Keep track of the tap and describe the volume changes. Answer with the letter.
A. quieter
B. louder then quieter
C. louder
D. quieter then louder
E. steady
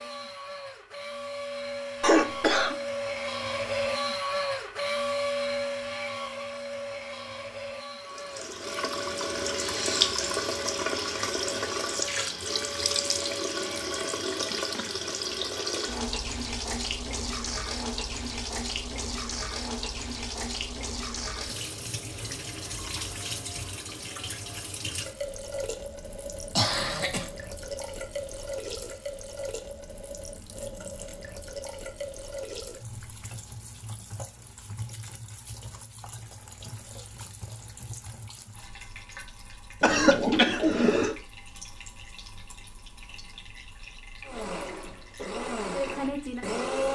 A.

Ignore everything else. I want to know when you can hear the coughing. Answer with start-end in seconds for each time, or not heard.
2.0-2.8, 26.6-27.3, 39.8-41.1.